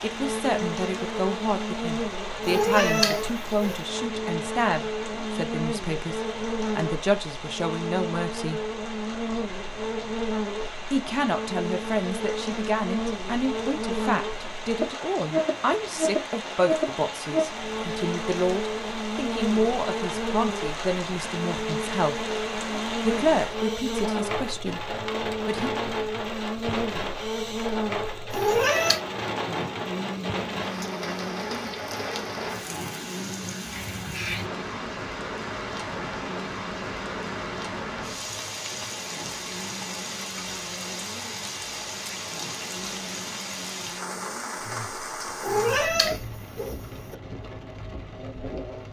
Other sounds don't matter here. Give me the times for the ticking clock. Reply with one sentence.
You can't hear the ticking clock here.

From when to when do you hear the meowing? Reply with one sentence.
The meowing can be heard from 2.5 to 3.8 s, from 28.3 to 29.0 s and from 45.4 to 47.1 s.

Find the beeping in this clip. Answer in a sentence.
The beeping can't be heard in this clip.